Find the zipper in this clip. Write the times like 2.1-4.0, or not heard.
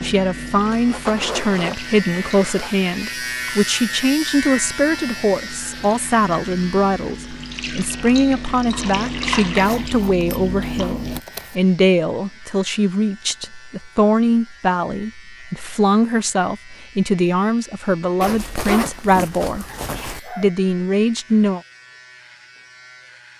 0.7-2.7, 9.6-11.6, 18.2-20.2.